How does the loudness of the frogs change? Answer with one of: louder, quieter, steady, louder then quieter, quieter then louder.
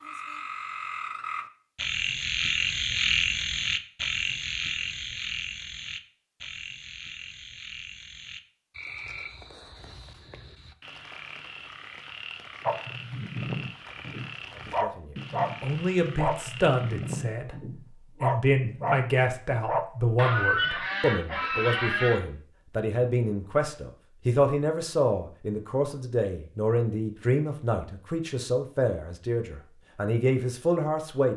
quieter.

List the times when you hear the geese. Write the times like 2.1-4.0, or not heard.
20.1-22.2.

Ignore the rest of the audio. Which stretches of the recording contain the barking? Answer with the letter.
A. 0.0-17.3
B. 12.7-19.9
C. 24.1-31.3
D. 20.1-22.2
B.